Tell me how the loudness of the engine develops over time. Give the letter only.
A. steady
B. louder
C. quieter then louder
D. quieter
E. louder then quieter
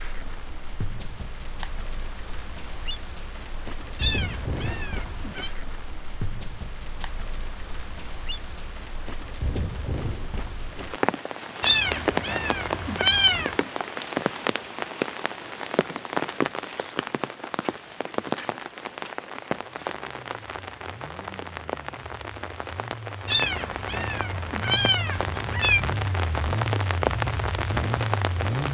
B.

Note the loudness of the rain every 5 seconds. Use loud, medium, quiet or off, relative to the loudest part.
medium, medium, loud, loud, medium, loud.